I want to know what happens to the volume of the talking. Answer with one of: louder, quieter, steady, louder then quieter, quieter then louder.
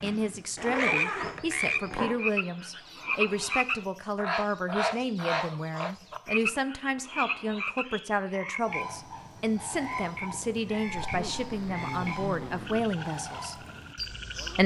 steady.